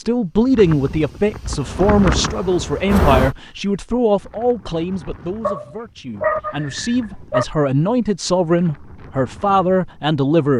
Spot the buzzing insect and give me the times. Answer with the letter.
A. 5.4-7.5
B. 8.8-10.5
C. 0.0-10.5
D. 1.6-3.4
D.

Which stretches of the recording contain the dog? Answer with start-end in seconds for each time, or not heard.
5.4-7.5.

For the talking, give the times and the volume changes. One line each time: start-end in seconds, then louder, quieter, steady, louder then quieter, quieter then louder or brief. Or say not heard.
0.0-10.5 quieter then louder.